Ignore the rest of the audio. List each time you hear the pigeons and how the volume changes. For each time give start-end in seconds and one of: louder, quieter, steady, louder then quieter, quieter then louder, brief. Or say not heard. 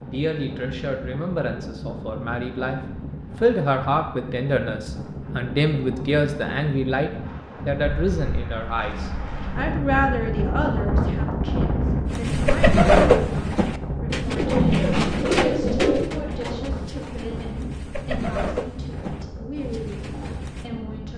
12.1-20.7 quieter.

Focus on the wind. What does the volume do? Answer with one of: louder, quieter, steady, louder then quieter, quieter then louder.
louder then quieter.